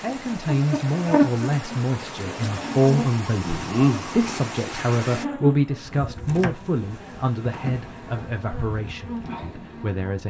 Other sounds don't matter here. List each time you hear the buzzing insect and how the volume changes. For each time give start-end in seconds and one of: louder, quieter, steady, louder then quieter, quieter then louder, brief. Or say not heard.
0.1-10.2 quieter.